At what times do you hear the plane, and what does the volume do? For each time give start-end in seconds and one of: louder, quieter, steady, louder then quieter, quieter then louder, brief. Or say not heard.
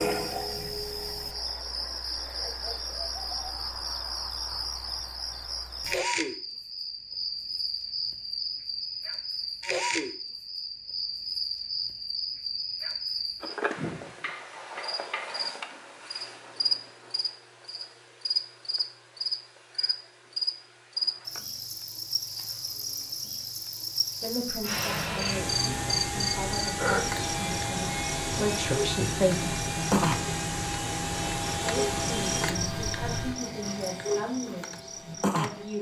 24.6-33.4 steady.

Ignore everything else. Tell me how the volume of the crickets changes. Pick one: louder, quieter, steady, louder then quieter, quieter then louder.
steady.